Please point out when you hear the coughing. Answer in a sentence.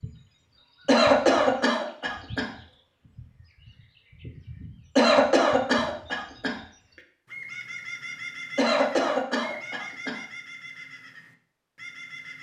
You can hear the coughing from 0.8 to 2.5 s, from 5.0 to 6.5 s and from 8.6 to 10.2 s.